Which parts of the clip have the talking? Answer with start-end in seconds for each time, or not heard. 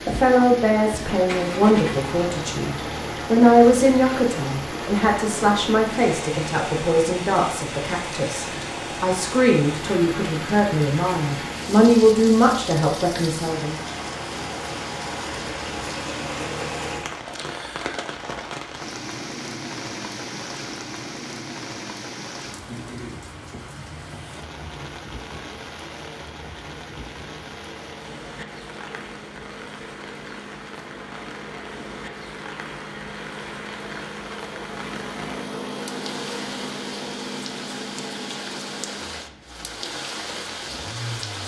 0.1-13.8.